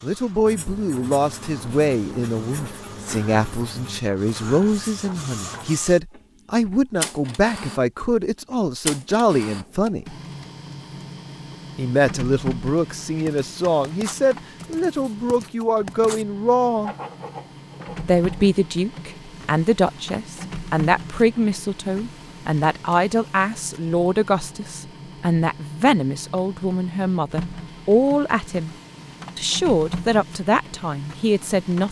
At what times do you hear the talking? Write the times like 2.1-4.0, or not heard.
0.0-10.2, 11.8-16.9, 18.1-28.8, 29.4-31.8.